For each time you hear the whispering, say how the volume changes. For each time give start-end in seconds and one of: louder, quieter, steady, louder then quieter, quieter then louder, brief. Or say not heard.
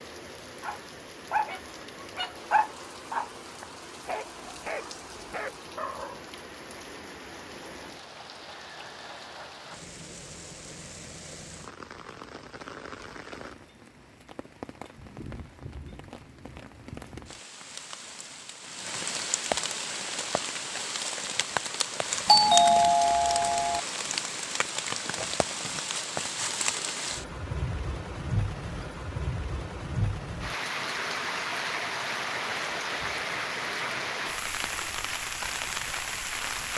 not heard.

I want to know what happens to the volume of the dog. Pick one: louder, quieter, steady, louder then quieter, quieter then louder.
quieter.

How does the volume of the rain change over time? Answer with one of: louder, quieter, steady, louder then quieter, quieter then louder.
louder.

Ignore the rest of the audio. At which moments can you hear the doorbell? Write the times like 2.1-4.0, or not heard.
22.2-23.8.